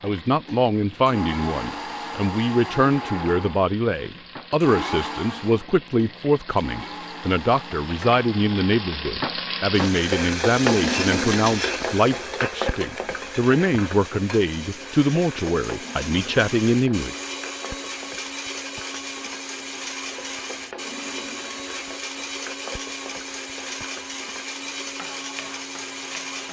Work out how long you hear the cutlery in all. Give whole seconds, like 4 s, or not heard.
not heard.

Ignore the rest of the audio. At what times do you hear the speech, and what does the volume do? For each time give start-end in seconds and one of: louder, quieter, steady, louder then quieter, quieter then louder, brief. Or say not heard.
0.0-17.1 steady.